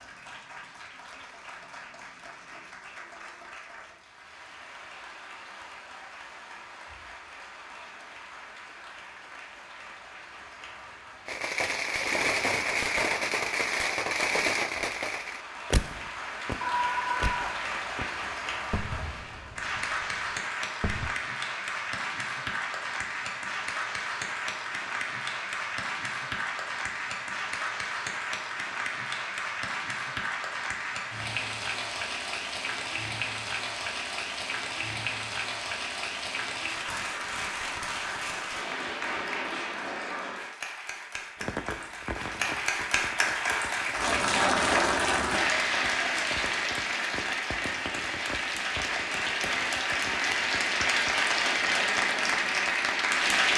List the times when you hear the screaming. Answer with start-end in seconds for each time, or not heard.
16.6-17.6.